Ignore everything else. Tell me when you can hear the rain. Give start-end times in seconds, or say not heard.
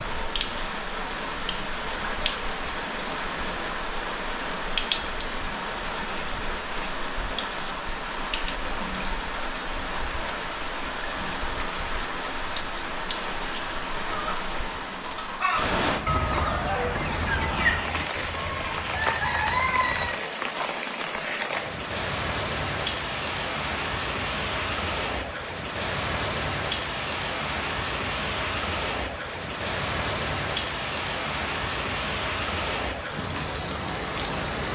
0.0-34.7.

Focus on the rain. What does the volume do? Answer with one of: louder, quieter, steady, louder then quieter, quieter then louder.
steady.